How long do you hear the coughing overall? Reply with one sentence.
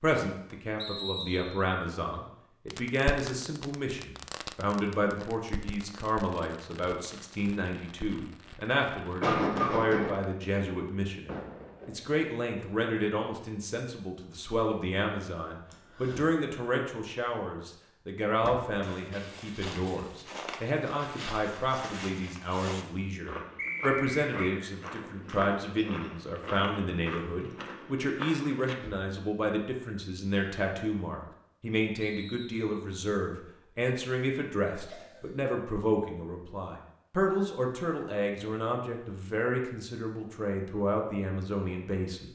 The coughing can be heard for 2 seconds in total.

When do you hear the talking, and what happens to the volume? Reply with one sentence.
You can hear the talking from 0.0 to 42.2 s, at a steady volume.